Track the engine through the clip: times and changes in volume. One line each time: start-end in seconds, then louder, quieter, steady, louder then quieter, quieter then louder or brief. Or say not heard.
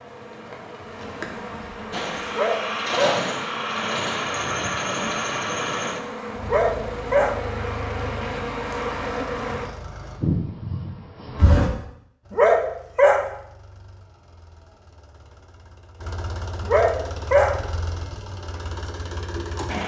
1.9-10.2 quieter
12.2-19.8 louder.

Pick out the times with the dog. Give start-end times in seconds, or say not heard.
2.3-3.2, 6.5-7.3, 12.3-13.2, 16.6-17.5.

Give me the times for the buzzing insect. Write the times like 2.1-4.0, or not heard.
0.0-11.7.